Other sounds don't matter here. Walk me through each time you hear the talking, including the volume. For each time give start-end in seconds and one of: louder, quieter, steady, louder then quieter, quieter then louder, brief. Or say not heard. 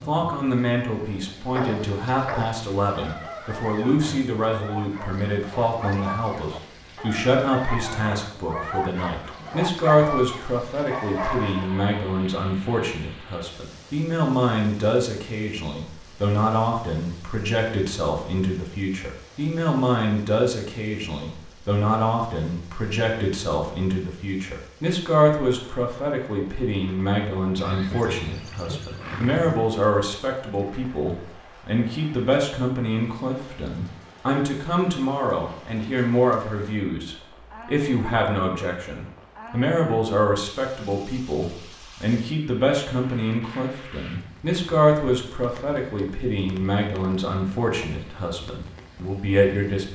0.1-49.8 steady.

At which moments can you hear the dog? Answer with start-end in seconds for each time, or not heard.
0.9-11.7.